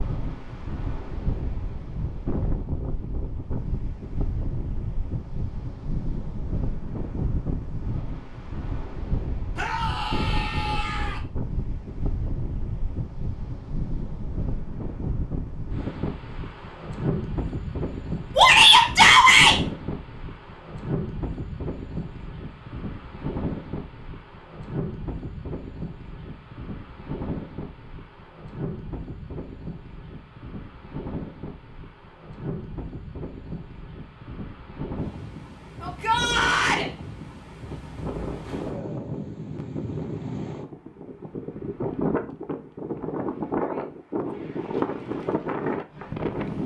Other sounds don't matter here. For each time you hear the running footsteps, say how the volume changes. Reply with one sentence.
The running footsteps can't be heard in this clip.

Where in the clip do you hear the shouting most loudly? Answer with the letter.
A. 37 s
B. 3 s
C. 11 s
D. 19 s
D.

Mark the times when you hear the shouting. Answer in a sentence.
You can hear the shouting from 9.6 to 11.2 s, from 18.4 to 19.6 s and from 35.8 to 36.9 s.